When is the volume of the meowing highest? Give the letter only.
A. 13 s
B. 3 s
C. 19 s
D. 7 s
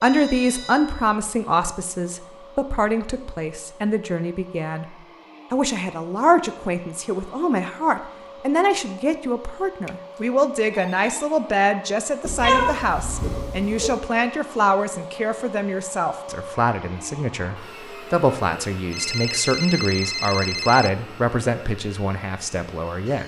A.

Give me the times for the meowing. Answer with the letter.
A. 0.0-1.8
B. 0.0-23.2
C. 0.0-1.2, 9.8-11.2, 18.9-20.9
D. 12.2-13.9
D.